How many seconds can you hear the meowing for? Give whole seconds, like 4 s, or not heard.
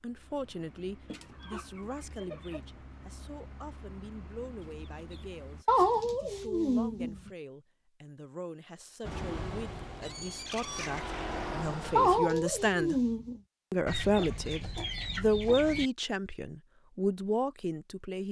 3 s.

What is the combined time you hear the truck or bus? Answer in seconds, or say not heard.
9 s.